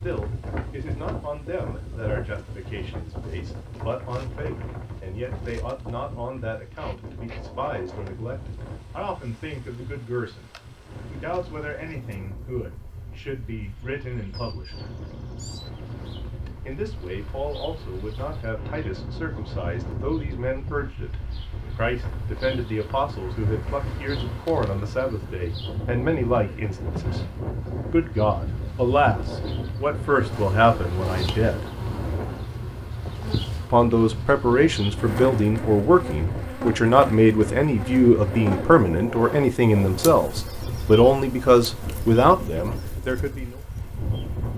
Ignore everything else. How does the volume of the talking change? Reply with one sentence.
The loudness of the talking goes up.